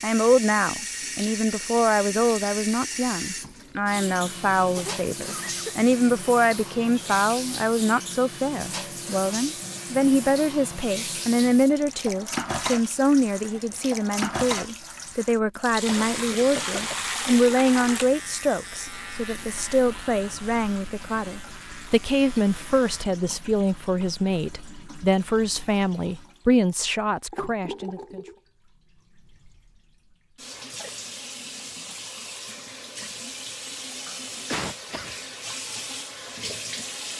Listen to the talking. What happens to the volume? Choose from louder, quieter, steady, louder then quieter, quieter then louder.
steady.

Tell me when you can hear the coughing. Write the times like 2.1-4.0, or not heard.
4.8-5.8, 15.8-17.1, 34.5-35.1.